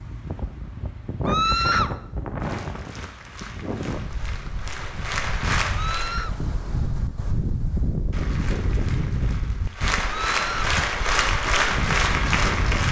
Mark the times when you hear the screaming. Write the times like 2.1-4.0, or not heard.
1.2-1.9, 5.7-6.3, 10.1-10.8.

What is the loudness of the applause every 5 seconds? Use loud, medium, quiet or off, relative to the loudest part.
quiet, medium, loud.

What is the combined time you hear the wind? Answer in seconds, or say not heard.
13 s.